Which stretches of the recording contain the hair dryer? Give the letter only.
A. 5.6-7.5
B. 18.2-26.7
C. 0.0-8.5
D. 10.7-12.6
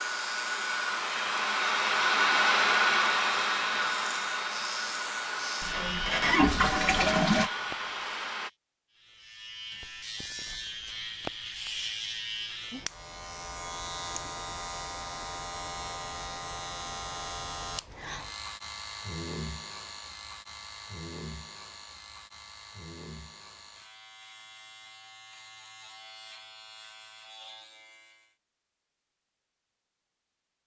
C.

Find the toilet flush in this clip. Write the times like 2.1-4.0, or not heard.
5.6-7.5.